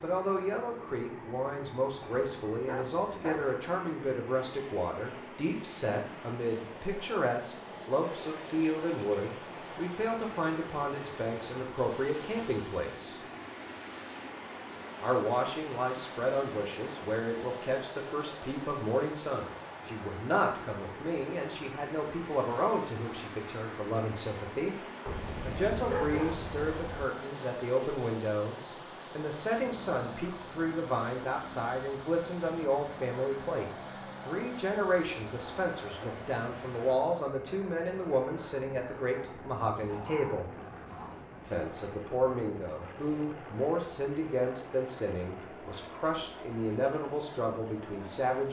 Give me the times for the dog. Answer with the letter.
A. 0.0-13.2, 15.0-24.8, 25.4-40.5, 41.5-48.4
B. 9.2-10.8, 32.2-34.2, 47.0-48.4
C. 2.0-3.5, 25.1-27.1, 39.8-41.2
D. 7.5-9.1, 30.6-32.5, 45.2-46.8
C.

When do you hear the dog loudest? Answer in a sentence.
The loudest moment of the dog is at 26 seconds.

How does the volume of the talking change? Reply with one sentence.
The loudness of the talking stays about the same.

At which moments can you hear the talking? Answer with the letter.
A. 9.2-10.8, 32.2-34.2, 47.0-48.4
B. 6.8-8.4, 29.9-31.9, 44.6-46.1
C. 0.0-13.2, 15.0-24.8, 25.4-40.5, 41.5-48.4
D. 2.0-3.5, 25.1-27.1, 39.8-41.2
C.